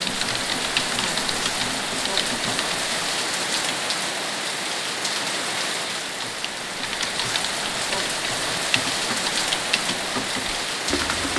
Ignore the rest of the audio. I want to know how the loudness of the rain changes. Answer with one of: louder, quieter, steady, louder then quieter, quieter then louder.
steady.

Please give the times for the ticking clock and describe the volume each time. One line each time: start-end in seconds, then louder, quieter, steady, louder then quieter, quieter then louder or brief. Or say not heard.
not heard.